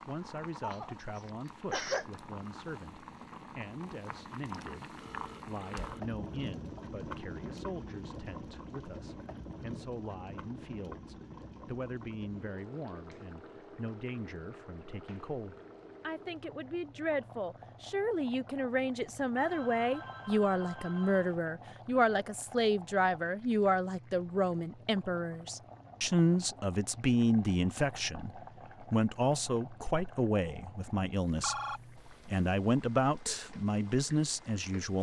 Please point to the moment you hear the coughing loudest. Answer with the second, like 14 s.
2 s.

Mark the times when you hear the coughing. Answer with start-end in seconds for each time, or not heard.
0.6-2.0.